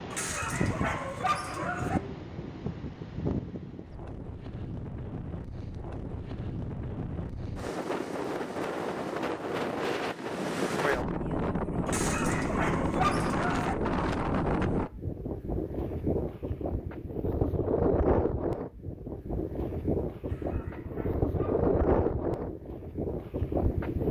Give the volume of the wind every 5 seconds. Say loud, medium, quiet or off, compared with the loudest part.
medium, medium, loud, loud, loud.